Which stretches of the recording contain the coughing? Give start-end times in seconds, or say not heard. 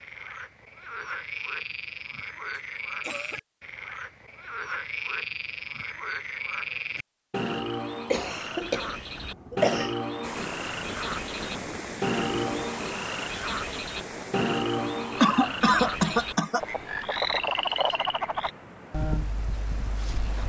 2.5-3.4, 8.1-9.9, 15.2-16.6.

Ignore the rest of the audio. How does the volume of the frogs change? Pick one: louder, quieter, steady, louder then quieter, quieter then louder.
louder.